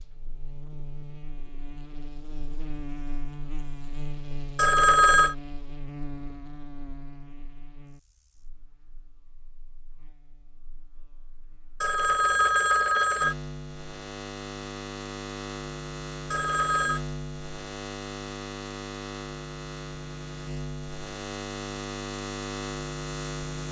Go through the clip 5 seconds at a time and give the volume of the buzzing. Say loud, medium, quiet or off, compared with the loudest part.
medium, medium, medium, loud, loud.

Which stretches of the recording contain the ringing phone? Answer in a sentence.
You can hear the ringing phone from 4.5 to 5.3 s, from 11.8 to 13.3 s and from 16.3 to 17.0 s.